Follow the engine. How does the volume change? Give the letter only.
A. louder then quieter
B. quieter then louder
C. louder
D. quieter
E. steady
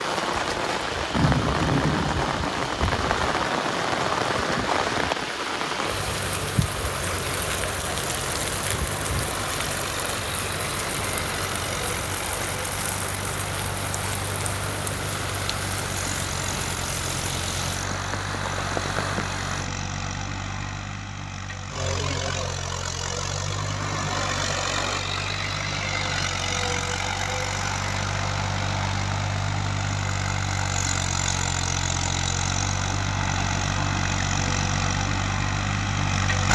C.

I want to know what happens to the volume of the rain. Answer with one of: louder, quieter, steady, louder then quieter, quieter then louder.
quieter.